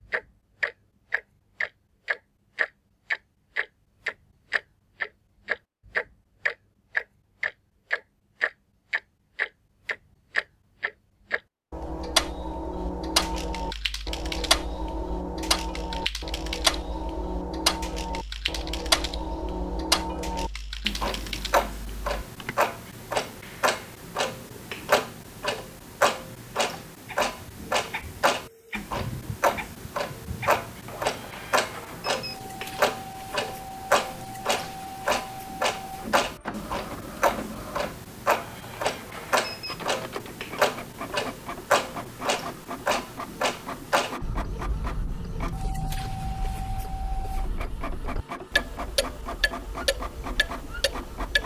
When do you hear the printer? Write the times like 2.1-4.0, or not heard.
27.1-51.4.